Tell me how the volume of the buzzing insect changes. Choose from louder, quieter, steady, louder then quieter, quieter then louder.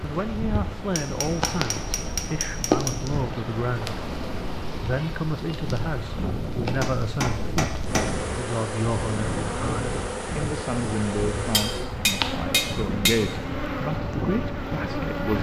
quieter then louder.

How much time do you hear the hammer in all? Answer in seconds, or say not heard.
5 s.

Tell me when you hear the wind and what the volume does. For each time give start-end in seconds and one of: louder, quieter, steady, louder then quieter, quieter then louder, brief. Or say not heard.
0.0-15.3 steady.